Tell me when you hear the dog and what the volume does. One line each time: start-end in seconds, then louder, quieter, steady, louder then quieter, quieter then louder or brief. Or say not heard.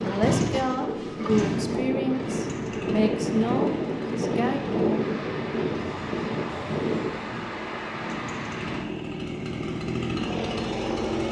not heard.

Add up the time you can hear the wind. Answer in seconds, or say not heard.
9 s.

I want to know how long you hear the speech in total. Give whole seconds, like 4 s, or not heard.
5 s.